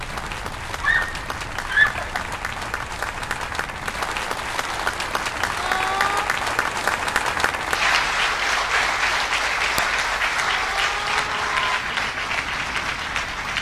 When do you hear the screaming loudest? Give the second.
2 s.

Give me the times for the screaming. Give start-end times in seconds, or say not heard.
0.8-2.2, 5.5-6.3, 10.6-11.8.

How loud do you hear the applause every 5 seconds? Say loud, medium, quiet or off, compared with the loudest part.
medium, loud, loud.